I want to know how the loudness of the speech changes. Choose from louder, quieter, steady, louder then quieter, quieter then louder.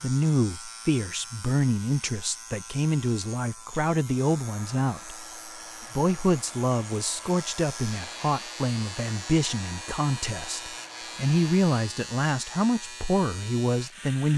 steady.